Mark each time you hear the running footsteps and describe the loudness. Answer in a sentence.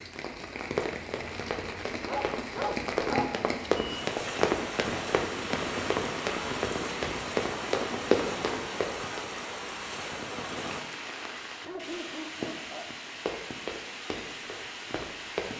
The running footsteps can be heard from 0.7 to 9.2 s, getting louder; and briefly from 13.2 to 15.5 s.